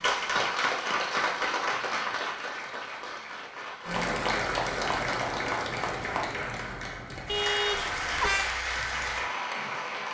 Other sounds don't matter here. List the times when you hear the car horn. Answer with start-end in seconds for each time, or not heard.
7.2-8.6.